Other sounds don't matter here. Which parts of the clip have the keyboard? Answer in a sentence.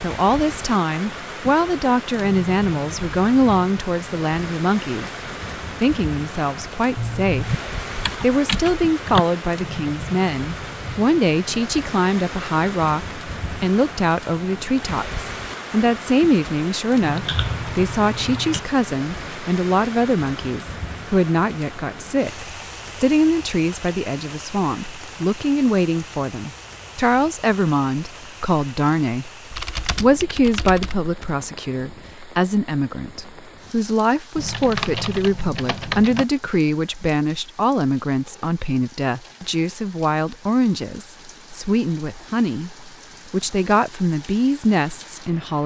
The keyboard can be heard from 7.0 to 9.2 s, from 17.0 to 18.6 s, from 29.5 to 31.3 s and from 34.4 to 36.2 s.